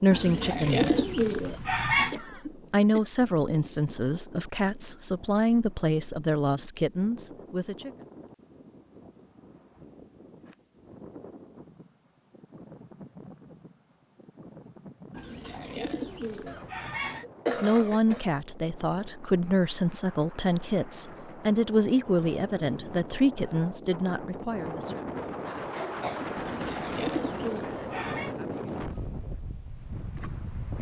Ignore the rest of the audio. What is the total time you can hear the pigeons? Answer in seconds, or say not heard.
6 s.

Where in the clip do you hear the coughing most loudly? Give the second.
18 s.